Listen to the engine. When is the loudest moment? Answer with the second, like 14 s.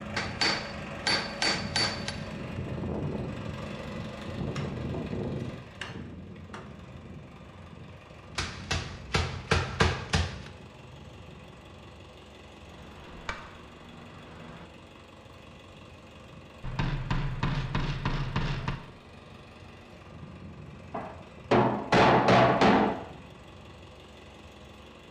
5 s.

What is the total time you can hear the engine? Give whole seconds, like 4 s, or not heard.
25 s.